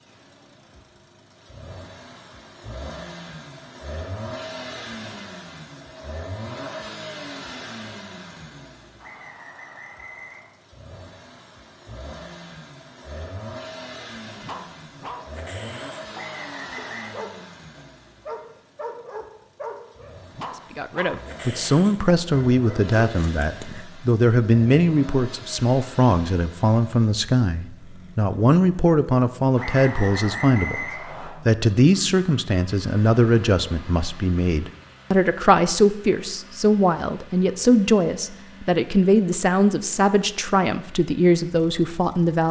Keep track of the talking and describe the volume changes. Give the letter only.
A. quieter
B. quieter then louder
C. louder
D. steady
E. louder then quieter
D.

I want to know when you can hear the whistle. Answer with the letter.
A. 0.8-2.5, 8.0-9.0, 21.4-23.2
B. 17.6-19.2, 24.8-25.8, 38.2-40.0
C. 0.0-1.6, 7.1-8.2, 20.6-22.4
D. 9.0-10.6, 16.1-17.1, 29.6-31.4
D.